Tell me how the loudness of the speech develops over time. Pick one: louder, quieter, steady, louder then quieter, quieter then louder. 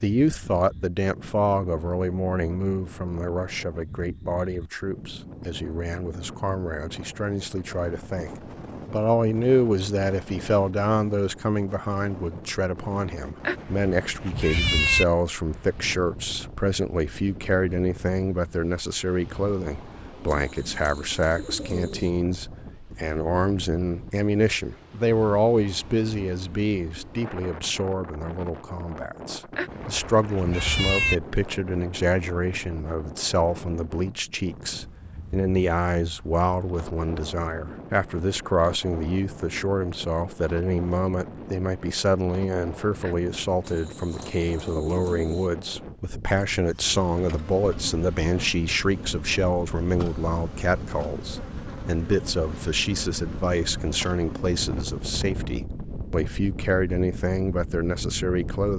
steady.